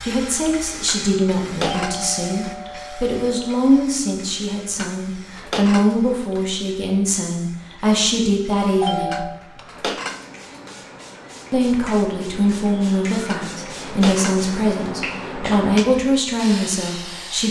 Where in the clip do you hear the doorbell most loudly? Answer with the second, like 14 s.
9 s.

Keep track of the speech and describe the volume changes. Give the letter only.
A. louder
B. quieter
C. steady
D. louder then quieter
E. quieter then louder
C.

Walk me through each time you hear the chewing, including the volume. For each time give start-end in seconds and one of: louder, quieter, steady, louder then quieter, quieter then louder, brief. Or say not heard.
not heard.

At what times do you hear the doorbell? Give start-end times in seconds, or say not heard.
1.6-3.5, 8.8-9.4.